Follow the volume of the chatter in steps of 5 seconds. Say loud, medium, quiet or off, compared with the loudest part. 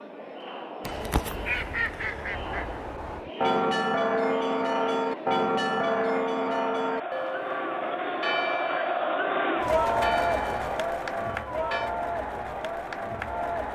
medium, loud, loud.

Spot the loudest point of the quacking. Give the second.
2 s.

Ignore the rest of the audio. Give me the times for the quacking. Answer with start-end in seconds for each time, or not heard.
0.8-3.3.